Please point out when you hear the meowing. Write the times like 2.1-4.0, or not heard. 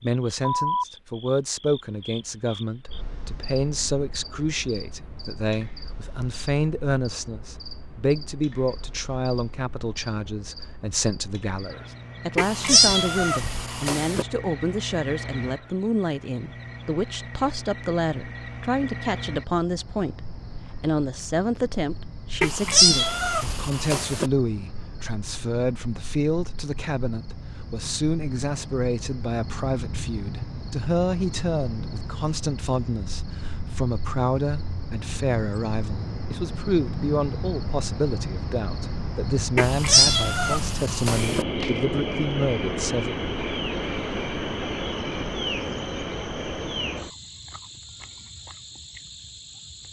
12.3-14.2, 22.4-24.3, 39.5-41.5.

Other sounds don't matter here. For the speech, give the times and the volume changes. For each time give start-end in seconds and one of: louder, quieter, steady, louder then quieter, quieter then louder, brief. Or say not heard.
0.0-43.1 steady.